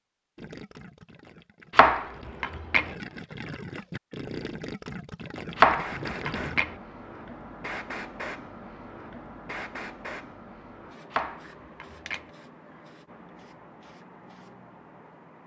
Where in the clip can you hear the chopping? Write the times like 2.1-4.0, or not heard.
1.8-2.9, 5.5-6.8, 11.1-12.2.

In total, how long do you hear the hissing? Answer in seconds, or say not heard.
10 s.